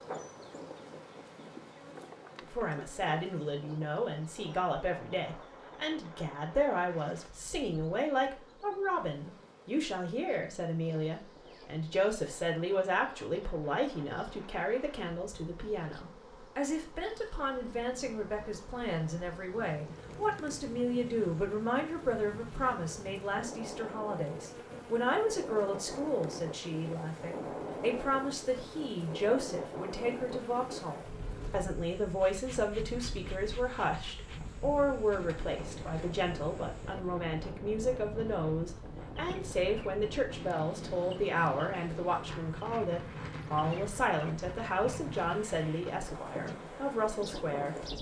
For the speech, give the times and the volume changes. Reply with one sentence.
The speech can be heard from 2.5 to 47.9 s, at a steady volume.